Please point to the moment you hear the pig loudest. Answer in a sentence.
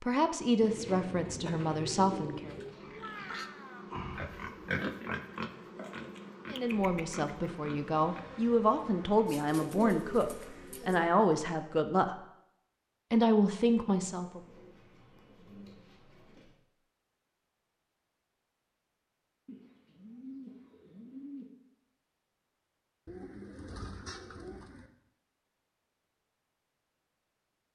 The loudest moment of the pig is at 5 seconds.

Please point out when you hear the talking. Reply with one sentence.
You can hear the talking from 0.0 to 2.5 s, from 6.5 to 12.2 s and from 13.1 to 14.4 s.